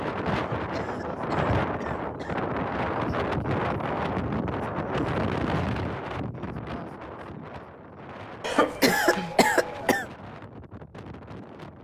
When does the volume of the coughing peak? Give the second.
9 s.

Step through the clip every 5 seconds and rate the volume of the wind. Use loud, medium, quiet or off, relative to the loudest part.
loud, medium, quiet.